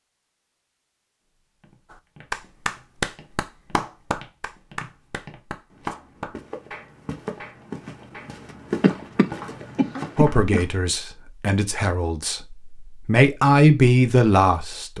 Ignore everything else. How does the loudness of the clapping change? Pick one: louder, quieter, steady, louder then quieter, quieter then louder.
quieter.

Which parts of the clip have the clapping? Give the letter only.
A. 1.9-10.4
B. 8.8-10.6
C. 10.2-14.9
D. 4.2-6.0
A.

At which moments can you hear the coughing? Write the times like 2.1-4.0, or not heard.
8.8-10.6.